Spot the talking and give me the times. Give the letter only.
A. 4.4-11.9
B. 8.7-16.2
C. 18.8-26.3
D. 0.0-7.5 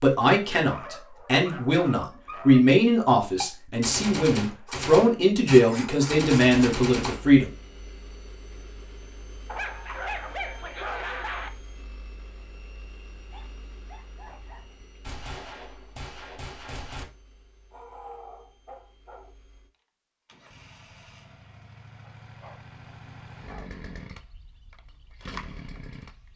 D.